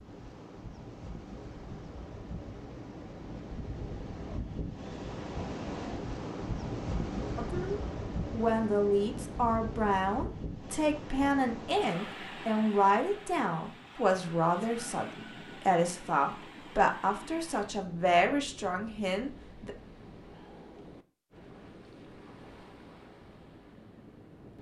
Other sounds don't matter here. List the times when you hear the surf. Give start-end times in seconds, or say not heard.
0.0-24.5.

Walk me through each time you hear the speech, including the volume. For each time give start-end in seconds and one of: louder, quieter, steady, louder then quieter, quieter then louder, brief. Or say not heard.
7.3-19.7 steady.